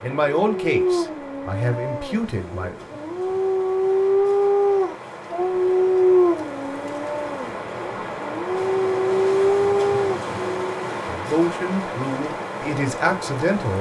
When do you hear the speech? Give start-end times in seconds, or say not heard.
0.0-2.9, 11.1-13.7.